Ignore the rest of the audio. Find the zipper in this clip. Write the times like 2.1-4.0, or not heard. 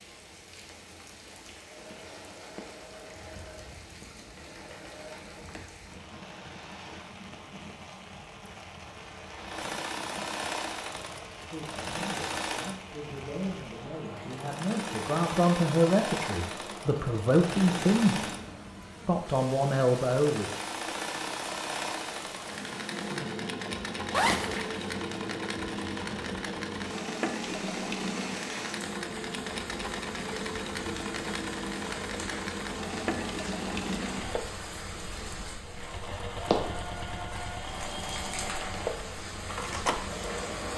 24.1-24.8.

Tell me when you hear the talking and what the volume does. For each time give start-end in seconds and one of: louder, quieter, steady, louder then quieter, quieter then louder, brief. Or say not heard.
11.5-18.4 louder
19.1-20.5 brief.